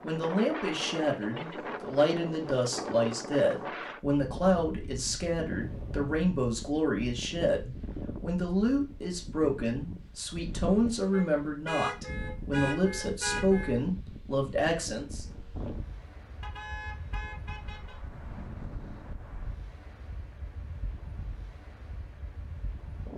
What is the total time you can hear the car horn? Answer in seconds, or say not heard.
5 s.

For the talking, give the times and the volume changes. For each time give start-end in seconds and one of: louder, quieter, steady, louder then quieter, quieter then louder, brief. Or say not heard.
0.0-15.2 steady.